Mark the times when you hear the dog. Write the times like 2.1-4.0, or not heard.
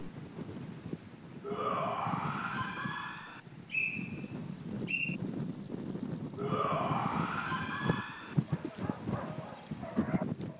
8.4-10.5.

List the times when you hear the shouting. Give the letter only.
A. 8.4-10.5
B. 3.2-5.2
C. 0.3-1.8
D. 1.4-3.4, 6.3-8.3
D.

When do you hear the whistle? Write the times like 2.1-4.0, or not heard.
3.7-5.2.